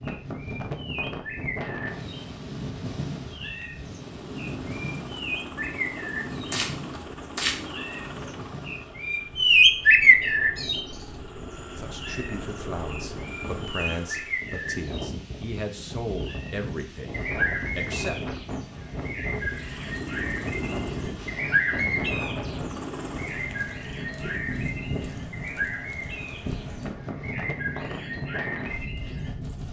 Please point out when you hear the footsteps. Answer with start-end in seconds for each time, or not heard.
not heard.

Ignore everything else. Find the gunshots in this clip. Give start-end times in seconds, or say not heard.
6.3-7.6.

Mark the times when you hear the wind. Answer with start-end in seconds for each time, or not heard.
0.0-29.6.